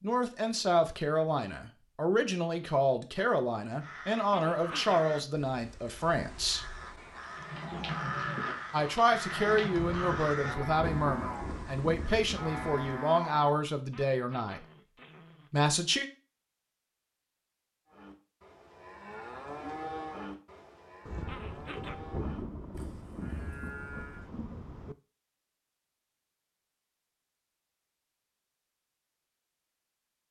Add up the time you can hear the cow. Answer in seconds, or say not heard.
13 s.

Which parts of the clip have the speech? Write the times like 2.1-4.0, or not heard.
0.0-6.7, 8.7-14.7, 15.5-16.1.